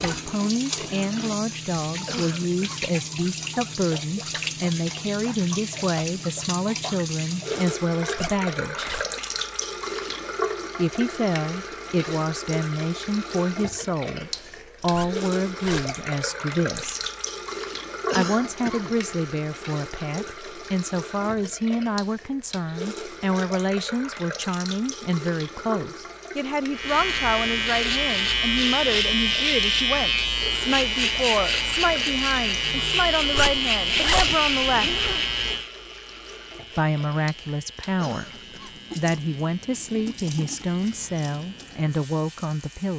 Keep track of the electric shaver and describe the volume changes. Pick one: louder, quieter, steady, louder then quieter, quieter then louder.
quieter.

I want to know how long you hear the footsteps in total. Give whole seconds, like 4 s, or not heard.
not heard.